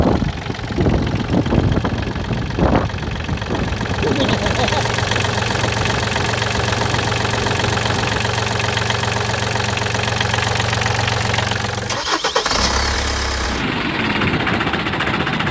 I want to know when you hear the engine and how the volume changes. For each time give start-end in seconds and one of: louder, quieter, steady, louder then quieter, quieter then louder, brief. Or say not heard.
0.0-15.4 louder.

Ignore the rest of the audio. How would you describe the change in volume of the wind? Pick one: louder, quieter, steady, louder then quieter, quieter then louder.
quieter.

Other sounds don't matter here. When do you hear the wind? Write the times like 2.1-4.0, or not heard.
0.0-8.2.